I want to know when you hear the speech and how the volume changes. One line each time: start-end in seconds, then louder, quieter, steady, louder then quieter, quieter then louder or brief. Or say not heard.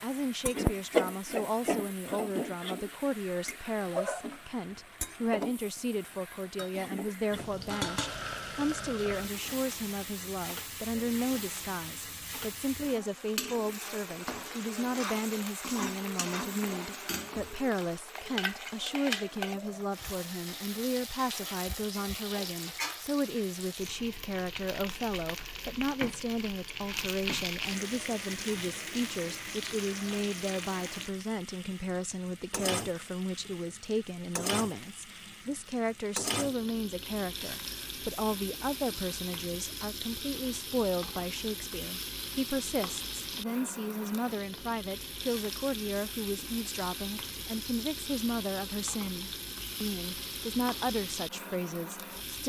0.0-52.4 steady.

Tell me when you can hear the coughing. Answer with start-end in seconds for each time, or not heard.
not heard.